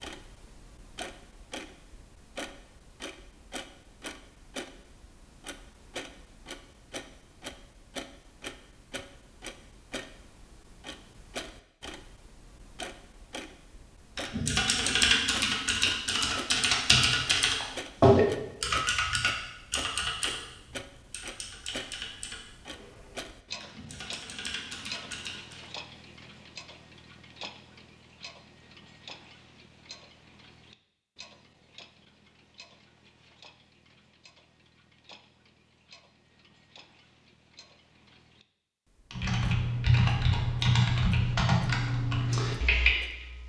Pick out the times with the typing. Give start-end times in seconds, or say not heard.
14.2-25.6, 39.1-43.4.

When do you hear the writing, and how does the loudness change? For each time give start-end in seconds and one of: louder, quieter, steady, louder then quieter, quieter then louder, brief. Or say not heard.
not heard.